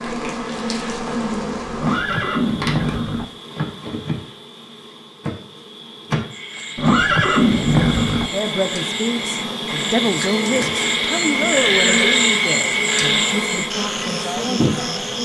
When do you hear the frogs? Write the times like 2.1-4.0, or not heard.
6.3-15.2.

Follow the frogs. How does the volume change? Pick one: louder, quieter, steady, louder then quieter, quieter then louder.
louder then quieter.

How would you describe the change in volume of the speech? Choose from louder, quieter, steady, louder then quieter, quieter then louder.
louder then quieter.